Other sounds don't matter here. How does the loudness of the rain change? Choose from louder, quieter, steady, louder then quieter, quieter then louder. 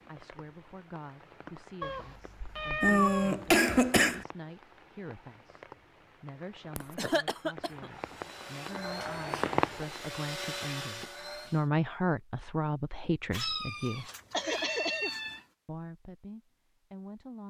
louder.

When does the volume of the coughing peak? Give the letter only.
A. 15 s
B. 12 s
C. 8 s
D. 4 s
D.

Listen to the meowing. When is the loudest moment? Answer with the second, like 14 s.
3 s.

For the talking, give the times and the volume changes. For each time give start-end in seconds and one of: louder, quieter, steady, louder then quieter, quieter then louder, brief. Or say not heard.
0.1-14.1 louder
15.7-17.4 brief.